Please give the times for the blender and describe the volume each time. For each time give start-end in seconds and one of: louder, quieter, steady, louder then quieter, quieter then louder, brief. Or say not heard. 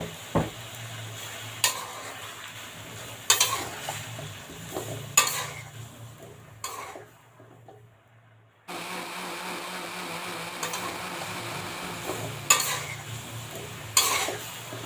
8.7-14.8 quieter.